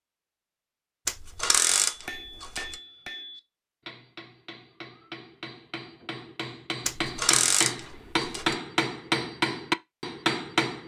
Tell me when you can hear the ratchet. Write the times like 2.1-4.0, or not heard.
1.1-2.8, 6.8-8.6.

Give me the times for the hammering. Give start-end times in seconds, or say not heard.
1.8-10.8.